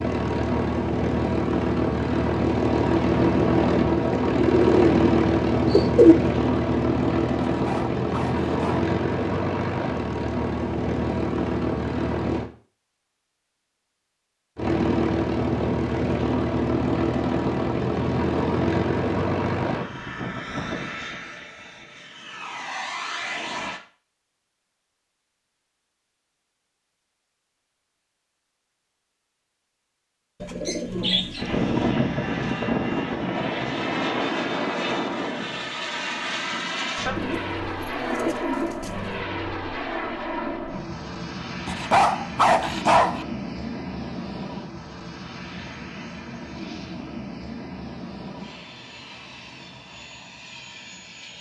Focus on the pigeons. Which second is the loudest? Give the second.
6 s.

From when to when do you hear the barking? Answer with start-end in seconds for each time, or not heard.
7.5-8.9, 41.6-43.2.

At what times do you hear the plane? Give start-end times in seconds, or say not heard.
0.0-12.5, 14.6-23.8, 31.4-51.3.